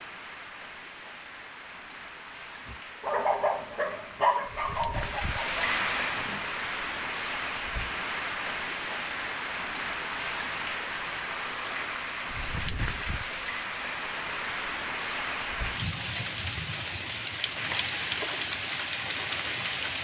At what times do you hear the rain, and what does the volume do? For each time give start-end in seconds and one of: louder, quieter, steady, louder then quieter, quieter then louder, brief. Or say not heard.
0.0-19.9 louder.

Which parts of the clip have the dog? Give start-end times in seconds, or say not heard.
2.6-6.4.